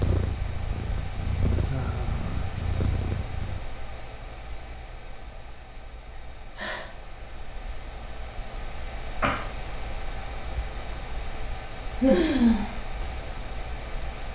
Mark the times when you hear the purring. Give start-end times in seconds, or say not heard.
0.0-3.6.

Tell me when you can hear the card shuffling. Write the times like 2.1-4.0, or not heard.
9.2-9.6.